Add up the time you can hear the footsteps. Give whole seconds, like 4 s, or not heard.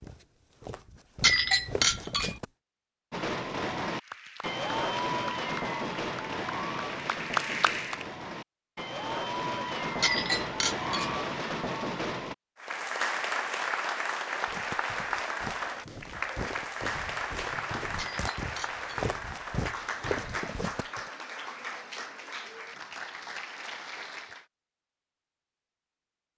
9 s.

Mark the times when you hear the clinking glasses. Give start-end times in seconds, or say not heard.
1.2-2.4, 10.0-11.2, 17.9-18.9.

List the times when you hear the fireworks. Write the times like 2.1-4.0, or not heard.
3.1-12.3.